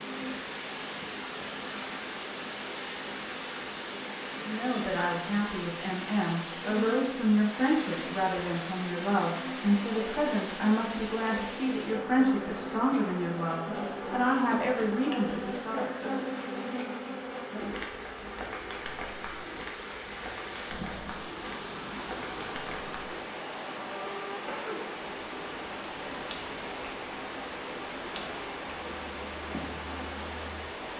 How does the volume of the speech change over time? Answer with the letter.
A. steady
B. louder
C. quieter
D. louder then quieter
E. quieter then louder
A.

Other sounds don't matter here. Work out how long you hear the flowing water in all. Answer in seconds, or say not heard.
31 s.